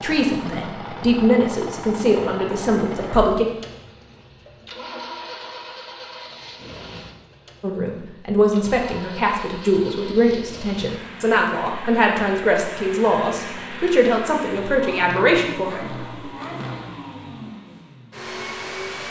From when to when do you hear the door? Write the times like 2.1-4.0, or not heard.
not heard.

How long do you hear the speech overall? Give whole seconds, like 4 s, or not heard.
12 s.